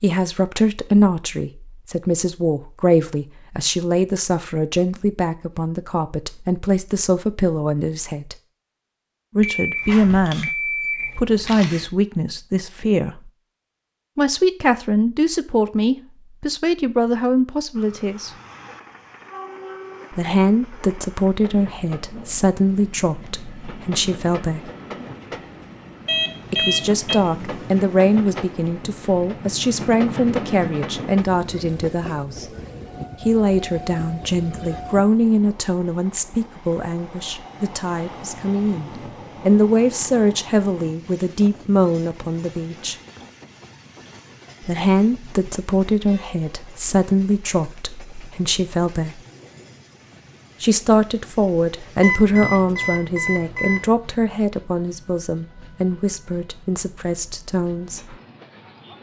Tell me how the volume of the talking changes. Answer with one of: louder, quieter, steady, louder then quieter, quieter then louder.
steady.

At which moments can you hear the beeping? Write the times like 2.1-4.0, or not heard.
9.4-11.8, 26.1-27.2, 52.0-53.9.